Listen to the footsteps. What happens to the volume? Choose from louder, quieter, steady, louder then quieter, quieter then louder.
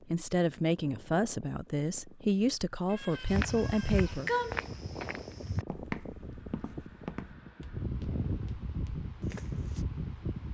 quieter.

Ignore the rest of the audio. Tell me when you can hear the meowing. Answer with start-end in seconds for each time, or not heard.
2.9-4.7.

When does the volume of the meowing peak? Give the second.
4 s.